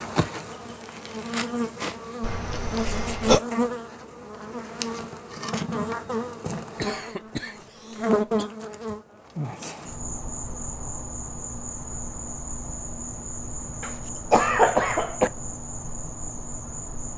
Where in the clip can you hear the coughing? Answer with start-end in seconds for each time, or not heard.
2.2-3.4, 6.8-8.5, 13.8-15.3.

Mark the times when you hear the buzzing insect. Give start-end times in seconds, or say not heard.
0.0-17.1.